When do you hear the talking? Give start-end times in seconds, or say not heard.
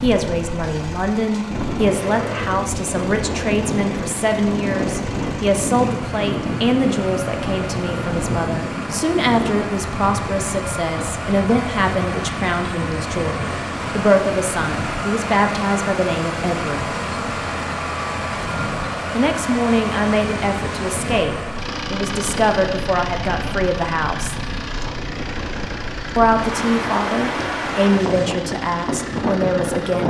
0.0-16.9, 19.1-24.4, 26.1-30.0.